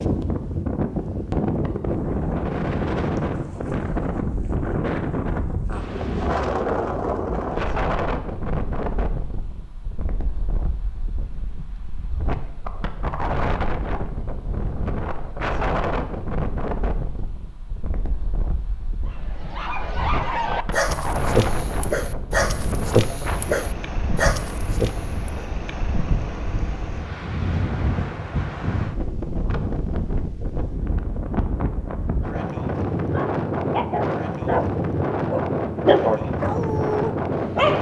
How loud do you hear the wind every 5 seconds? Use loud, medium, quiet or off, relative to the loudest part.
loud, loud, medium, medium, medium, medium, loud, loud.